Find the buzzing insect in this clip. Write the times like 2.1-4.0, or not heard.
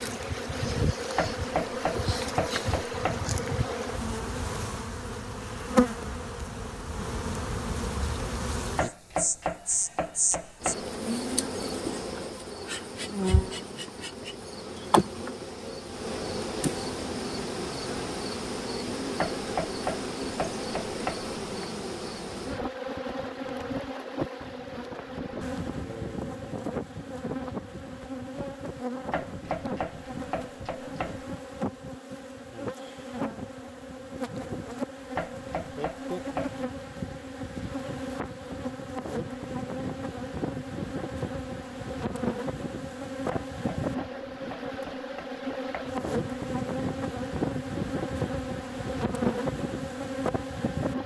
0.0-51.0.